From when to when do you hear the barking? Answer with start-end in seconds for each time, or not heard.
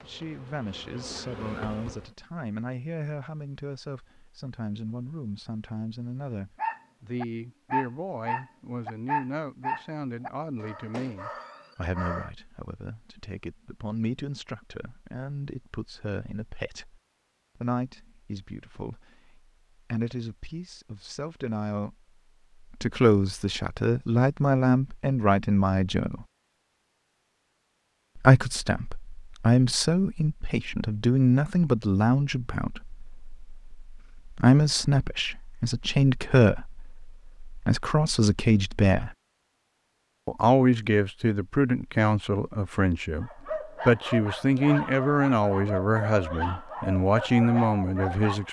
6.5-12.3, 43.2-48.4.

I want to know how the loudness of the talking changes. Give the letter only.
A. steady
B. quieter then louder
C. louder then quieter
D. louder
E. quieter
D.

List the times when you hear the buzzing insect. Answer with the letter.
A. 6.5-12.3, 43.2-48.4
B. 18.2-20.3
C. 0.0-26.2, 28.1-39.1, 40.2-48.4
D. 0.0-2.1
D.